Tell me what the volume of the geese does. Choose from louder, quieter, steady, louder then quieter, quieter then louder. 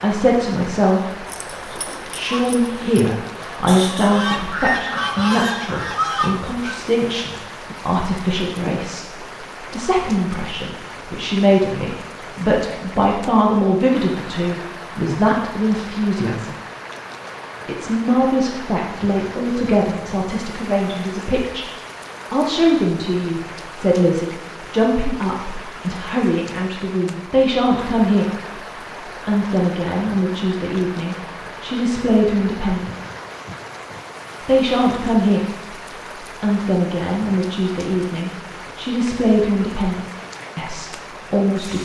quieter then louder.